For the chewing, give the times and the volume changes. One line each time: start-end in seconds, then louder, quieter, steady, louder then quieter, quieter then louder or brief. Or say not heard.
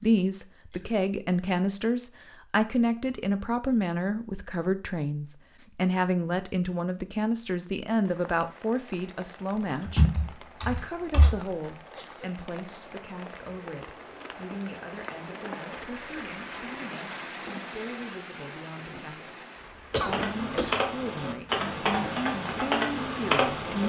not heard.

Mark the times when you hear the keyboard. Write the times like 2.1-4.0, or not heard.
9.8-11.4, 19.9-23.8.